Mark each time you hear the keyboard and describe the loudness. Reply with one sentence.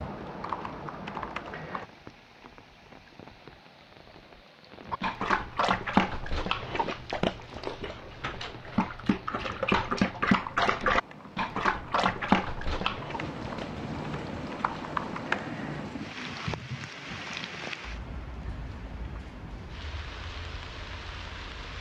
You can hear the keyboard briefly from 0.0 to 1.9 s; and from 10.4 to 16.9 s, getting louder then quieter.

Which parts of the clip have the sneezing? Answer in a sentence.
You can't hear the sneezing here.